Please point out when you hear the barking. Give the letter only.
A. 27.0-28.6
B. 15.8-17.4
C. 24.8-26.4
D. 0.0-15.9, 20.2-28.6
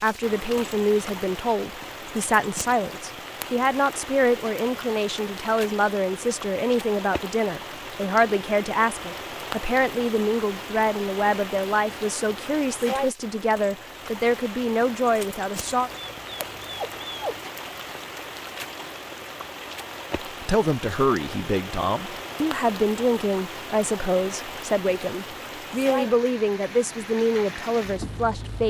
B.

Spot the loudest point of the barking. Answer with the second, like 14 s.
17 s.